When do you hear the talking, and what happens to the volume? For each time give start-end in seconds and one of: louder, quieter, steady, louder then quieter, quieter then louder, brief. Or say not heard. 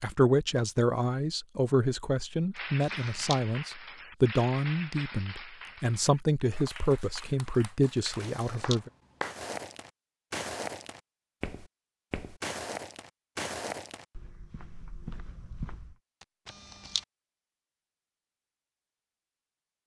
0.0-8.9 steady.